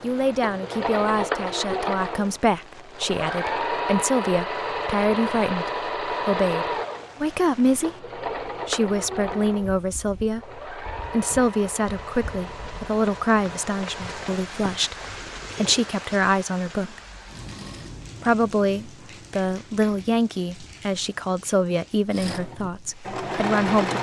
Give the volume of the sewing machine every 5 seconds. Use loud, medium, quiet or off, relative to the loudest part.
loud, loud, medium, quiet, loud.